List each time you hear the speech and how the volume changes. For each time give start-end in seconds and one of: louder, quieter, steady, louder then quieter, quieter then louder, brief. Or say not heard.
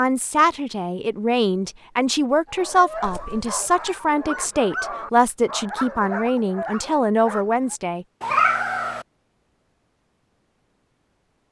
0.0-8.1 steady.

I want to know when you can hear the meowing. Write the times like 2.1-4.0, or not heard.
3.0-3.9, 8.2-9.1.